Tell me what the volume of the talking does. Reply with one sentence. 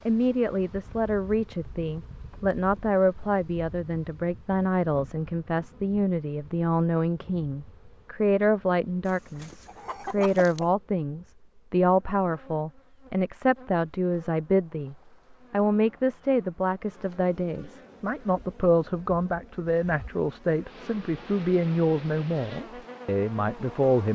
The volume of the talking stays about the same.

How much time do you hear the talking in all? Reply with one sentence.
You can hear the talking for 24 seconds altogether.